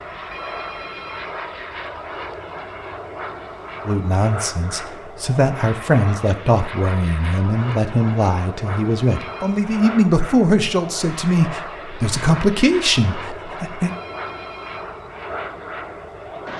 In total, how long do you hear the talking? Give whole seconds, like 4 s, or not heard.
10 s.